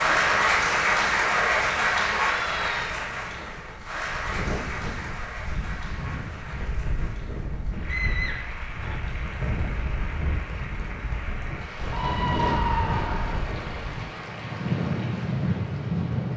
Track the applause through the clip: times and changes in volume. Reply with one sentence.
The applause can be heard from 0.0 to 16.3 s, getting quieter.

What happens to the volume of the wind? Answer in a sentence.
The loudness of the wind goes up.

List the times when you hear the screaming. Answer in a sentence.
The screaming can be heard from 2.2 to 3.0 s, from 7.8 to 8.9 s and from 11.9 to 13.4 s.